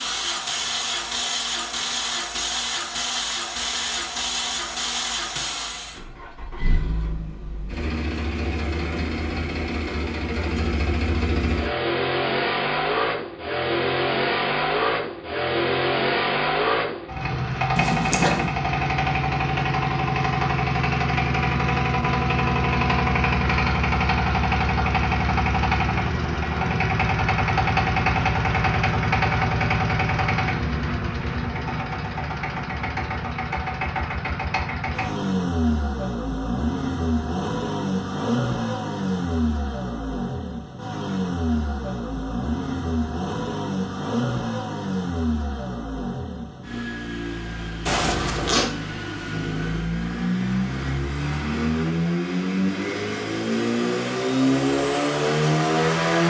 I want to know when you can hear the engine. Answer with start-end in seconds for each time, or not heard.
0.0-56.2.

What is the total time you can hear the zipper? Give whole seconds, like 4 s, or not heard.
2 s.